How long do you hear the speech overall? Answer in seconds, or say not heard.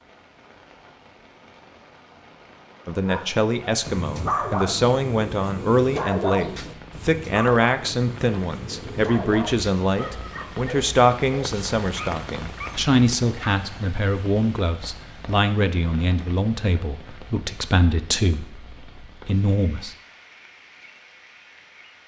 17 s.